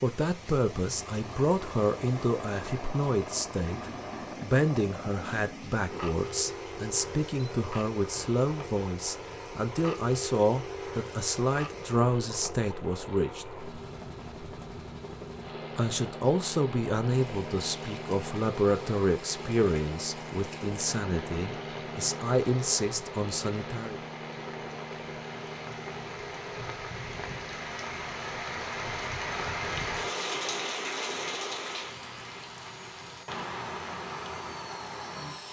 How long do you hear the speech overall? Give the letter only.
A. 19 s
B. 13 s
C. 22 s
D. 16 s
C.